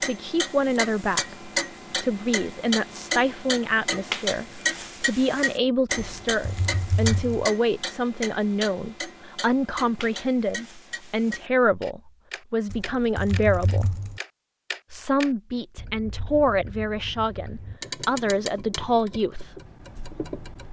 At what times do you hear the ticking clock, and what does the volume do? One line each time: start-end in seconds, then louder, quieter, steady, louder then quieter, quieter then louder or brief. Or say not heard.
0.0-20.6 quieter.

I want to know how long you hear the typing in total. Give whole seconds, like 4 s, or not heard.
3 s.